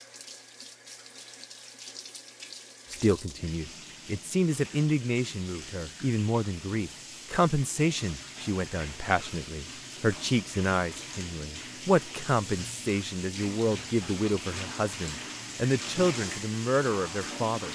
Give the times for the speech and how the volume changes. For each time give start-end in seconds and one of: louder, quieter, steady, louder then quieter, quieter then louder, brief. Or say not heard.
2.9-17.7 steady.